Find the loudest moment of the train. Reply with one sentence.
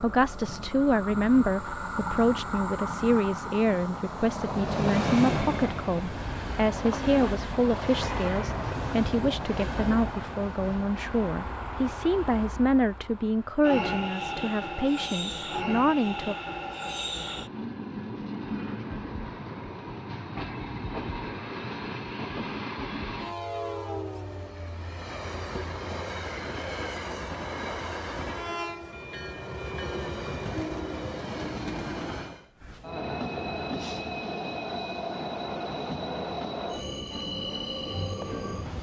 The loudest moment of the train is at 5 seconds.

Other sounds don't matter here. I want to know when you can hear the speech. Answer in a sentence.
You can hear the speech from 0.0 to 16.4 s.